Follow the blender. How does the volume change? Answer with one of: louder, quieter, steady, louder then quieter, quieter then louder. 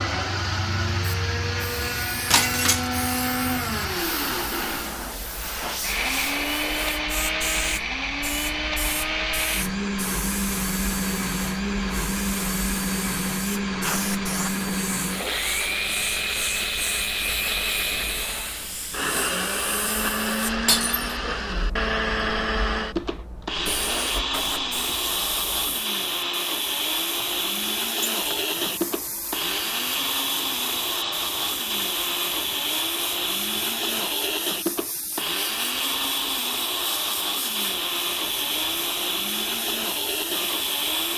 steady.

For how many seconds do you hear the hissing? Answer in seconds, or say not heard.
41 s.